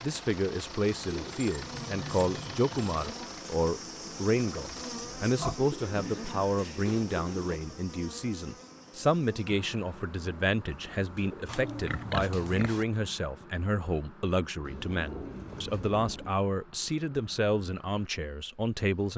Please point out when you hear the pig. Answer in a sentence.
The pig can be heard from 5.0 to 7.0 s and from 11.4 to 12.8 s.